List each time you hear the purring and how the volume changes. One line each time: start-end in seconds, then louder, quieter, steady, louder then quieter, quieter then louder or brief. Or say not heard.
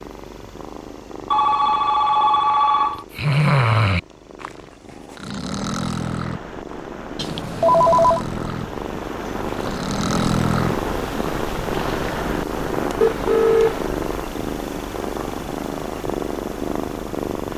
0.0-17.5 louder.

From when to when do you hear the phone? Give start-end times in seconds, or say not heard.
1.3-3.0, 7.2-8.2, 13.0-13.8.